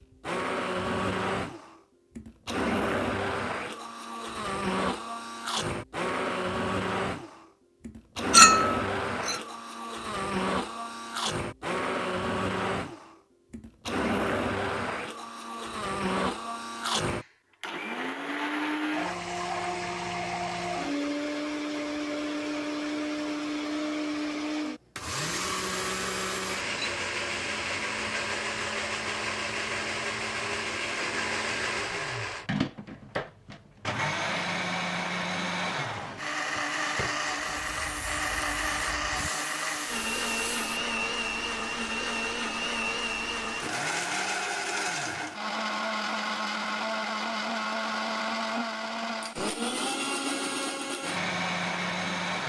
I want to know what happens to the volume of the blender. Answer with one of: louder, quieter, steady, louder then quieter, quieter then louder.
steady.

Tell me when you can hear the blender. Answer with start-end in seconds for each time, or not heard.
0.0-52.4.